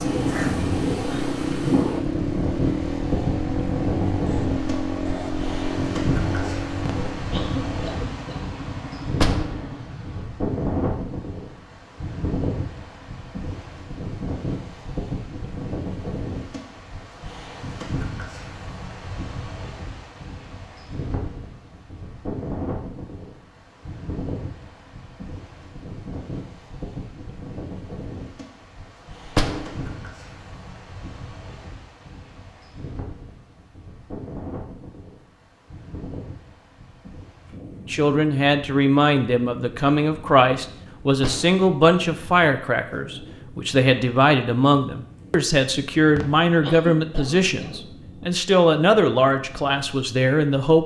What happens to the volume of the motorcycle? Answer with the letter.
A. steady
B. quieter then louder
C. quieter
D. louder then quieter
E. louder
C.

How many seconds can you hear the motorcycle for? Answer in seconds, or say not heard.
10 s.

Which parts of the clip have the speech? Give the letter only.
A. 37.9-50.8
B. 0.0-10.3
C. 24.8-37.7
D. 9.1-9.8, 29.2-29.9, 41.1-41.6
A.